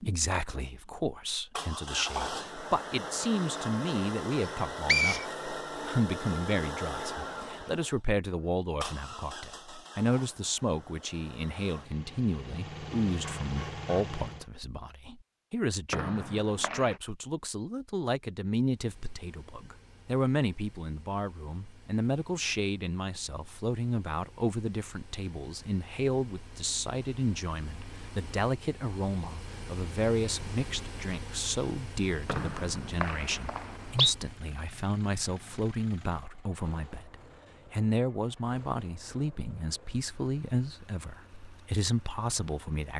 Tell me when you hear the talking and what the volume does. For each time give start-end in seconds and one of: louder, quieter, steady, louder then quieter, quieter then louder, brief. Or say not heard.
0.0-42.9 steady.